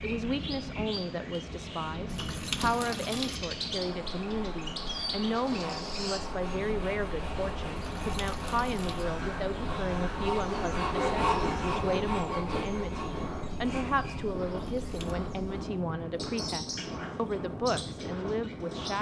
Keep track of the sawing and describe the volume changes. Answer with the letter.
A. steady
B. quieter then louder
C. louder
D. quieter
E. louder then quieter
E.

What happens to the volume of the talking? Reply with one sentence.
The loudness of the talking stays about the same.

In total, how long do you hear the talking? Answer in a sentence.
The talking can be heard for 19 seconds in total.